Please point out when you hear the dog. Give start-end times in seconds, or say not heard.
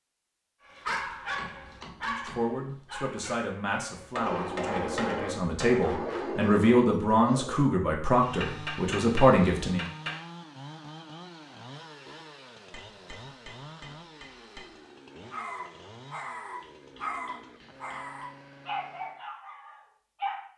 0.7-7.7, 15.3-20.4.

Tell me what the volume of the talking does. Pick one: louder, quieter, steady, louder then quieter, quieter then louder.
louder.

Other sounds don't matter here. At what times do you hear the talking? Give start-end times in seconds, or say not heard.
2.0-9.8.